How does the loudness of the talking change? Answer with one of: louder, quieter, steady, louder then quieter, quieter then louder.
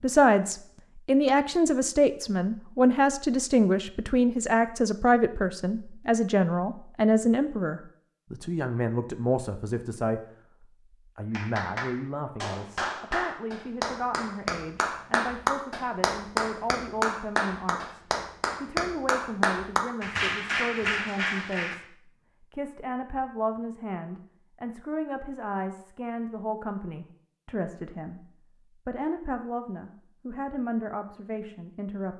quieter.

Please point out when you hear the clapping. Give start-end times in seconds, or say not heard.
11.3-21.8.